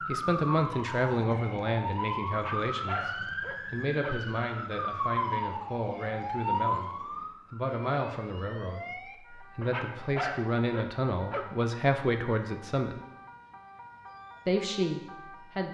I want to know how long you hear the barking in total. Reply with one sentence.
The barking can be heard for 4 seconds in total.